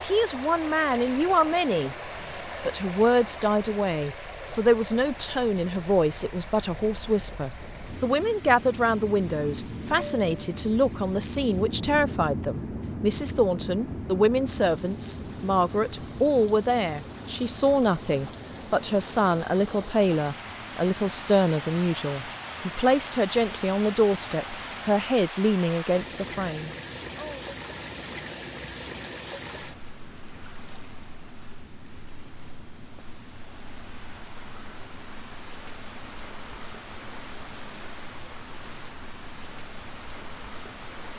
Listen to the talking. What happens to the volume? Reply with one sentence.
The loudness of the talking stays about the same.